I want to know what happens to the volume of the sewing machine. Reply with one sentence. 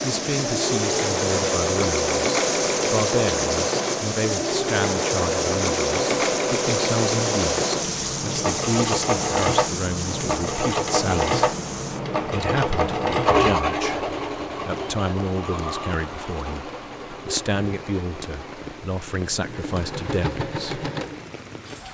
The loudness of the sewing machine goes down.